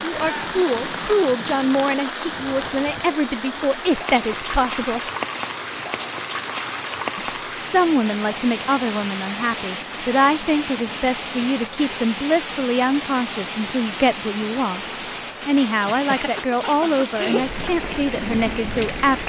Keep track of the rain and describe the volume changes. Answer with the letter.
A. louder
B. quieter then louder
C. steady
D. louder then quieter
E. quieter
C.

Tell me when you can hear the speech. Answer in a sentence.
You can hear the speech from 0.0 to 5.0 s and from 7.2 to 19.2 s.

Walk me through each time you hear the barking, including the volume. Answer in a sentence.
You can't hear the barking here.